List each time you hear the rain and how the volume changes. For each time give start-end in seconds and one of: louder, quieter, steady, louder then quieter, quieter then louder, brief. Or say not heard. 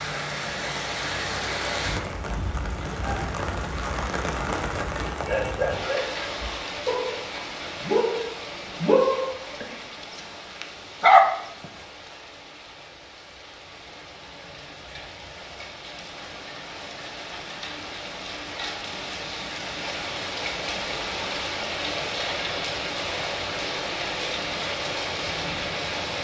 0.0-26.1 quieter then louder.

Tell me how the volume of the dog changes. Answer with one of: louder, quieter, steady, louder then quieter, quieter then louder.
louder then quieter.